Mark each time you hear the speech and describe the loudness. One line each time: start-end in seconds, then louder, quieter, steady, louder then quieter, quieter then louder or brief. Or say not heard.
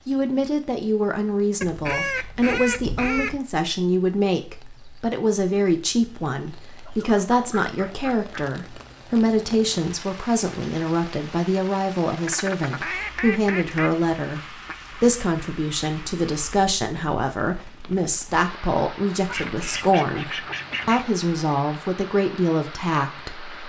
0.1-23.6 steady.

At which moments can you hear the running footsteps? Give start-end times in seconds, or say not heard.
not heard.